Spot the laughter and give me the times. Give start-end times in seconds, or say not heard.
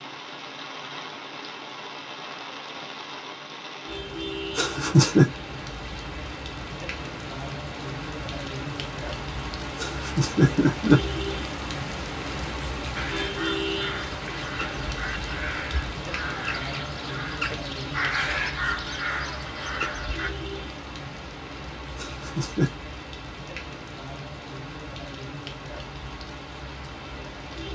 4.5-5.2, 9.8-11.0, 21.9-22.7.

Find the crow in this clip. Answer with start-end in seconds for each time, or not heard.
12.9-20.3.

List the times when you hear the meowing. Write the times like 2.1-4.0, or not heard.
not heard.